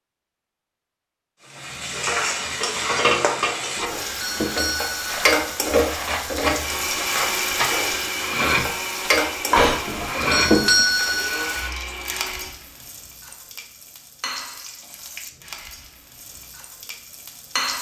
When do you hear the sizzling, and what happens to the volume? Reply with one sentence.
The sizzling can be heard from 1.5 to 17.7 s, getting quieter.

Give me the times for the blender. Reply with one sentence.
The blender can be heard from 6.6 to 12.6 s.